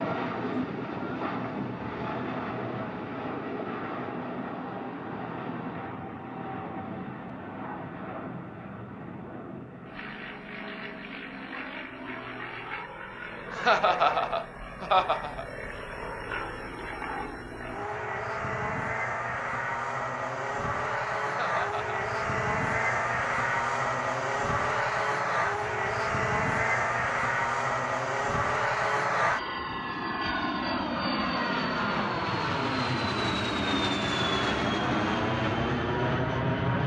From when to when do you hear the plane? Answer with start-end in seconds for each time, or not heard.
0.0-36.8.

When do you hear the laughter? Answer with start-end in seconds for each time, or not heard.
13.5-15.4, 21.2-22.0.